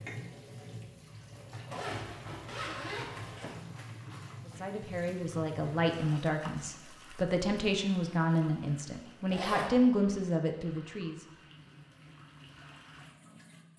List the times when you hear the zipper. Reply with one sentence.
The zipper can be heard from 1.7 to 3.6 s and from 9.2 to 9.8 s.